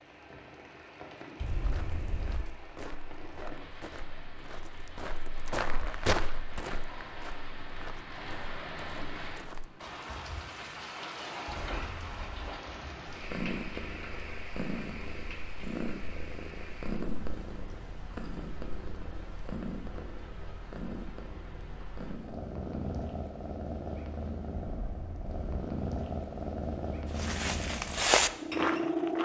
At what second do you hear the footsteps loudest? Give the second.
28 s.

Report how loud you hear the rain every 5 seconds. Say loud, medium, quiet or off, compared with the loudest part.
medium, loud, loud, medium, medium, off.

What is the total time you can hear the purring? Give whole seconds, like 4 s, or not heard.
16 s.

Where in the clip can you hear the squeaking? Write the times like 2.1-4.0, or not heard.
1.4-2.5, 11.4-12.5, 24.6-25.4.